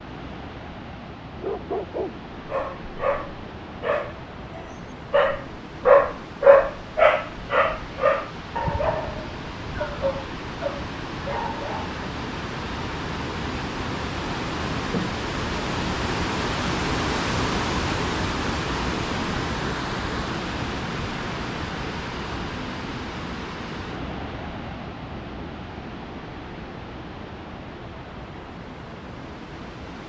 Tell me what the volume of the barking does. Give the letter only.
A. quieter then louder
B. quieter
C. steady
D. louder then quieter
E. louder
D.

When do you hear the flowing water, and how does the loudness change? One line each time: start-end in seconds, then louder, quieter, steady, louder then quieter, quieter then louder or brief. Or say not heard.
0.0-30.0 louder then quieter.